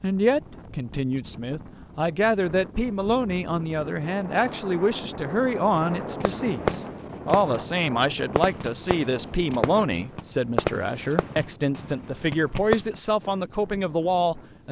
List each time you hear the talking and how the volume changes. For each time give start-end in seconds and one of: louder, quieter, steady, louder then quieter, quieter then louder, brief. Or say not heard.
0.0-14.6 steady.